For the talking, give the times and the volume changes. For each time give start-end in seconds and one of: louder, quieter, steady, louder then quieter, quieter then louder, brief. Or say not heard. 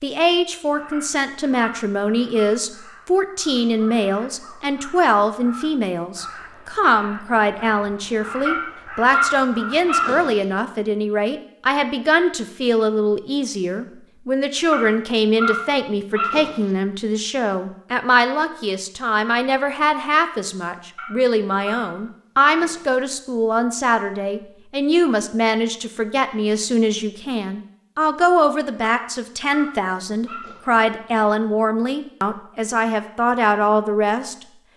0.0-34.4 steady.